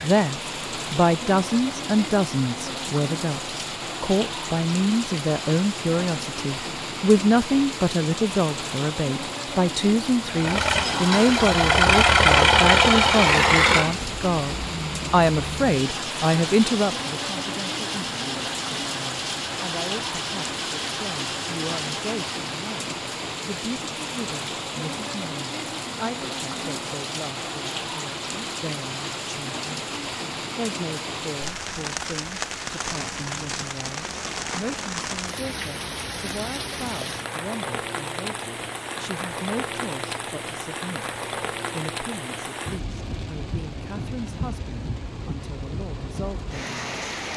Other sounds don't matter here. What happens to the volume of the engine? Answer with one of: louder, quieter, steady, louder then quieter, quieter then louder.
quieter.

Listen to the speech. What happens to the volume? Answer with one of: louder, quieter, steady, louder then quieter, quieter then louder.
quieter.